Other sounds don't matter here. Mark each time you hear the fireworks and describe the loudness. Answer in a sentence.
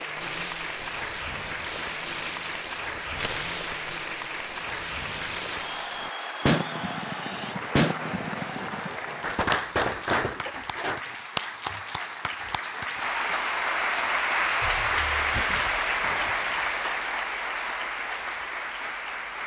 You can hear the fireworks from 0.1 to 11.2 s, getting louder.